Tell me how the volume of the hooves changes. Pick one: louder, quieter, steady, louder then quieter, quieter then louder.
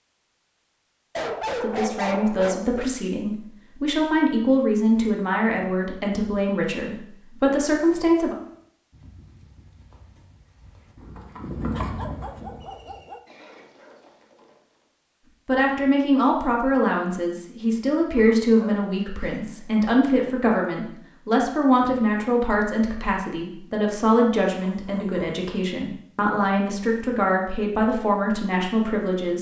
louder then quieter.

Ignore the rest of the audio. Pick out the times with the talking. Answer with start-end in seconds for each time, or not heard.
1.6-8.3, 15.4-29.3.